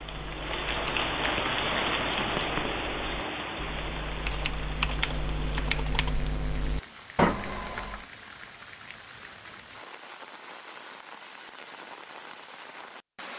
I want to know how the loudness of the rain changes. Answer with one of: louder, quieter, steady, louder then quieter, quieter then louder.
quieter.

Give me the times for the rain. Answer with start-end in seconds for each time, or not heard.
0.0-13.3.